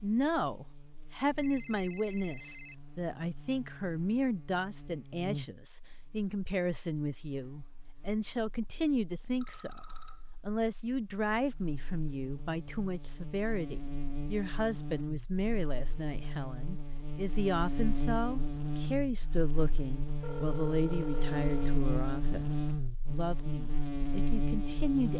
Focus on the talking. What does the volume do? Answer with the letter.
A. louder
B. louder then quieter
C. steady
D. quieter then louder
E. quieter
C.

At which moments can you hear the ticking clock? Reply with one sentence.
You can't hear the ticking clock here.